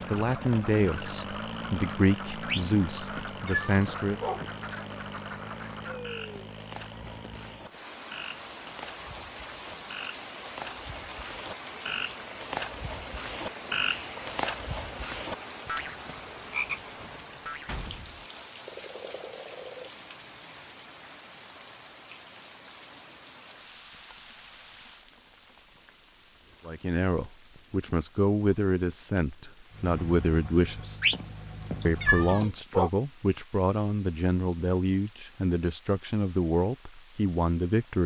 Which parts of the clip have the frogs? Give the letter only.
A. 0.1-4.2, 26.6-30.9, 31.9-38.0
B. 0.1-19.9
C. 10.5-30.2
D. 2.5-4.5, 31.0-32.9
B.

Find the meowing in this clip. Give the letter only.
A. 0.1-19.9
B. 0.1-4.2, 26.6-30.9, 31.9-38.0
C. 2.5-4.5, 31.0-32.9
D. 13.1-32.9
C.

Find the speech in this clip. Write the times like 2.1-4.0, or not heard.
0.1-4.2, 26.6-30.9, 31.9-38.0.